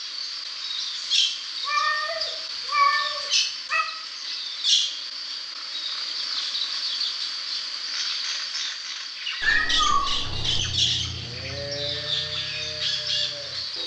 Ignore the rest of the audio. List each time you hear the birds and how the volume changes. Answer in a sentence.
You can hear the birds from 0.0 to 13.8 s, at a steady volume.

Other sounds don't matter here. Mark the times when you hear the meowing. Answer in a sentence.
The meowing can be heard from 1.6 to 3.9 s and from 9.4 to 10.6 s.